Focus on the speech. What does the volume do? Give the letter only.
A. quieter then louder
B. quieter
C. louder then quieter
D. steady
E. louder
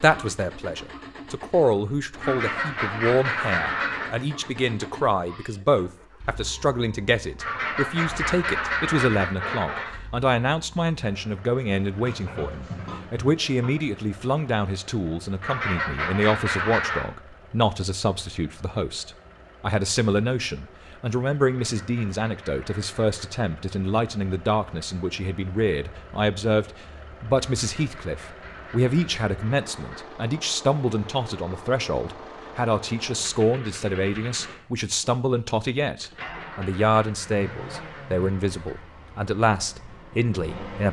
D.